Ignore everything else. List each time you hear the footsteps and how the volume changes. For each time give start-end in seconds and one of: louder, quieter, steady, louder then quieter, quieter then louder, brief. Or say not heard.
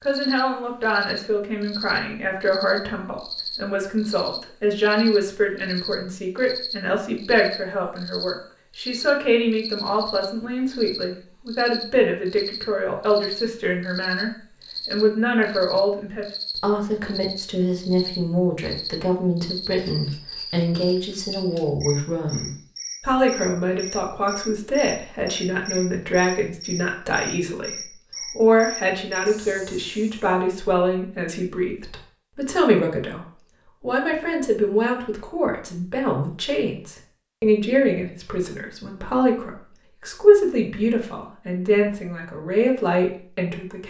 not heard.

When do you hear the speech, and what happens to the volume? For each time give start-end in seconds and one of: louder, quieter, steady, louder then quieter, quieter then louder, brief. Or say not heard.
0.0-43.8 steady.